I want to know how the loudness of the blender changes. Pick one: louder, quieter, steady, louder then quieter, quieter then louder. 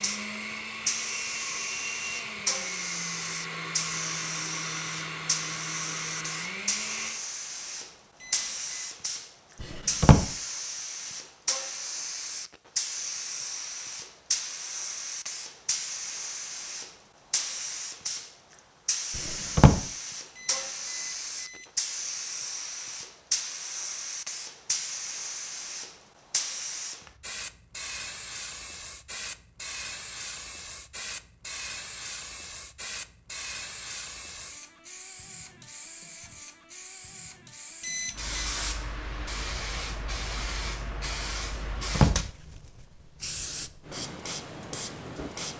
steady.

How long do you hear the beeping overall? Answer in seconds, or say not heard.
3 s.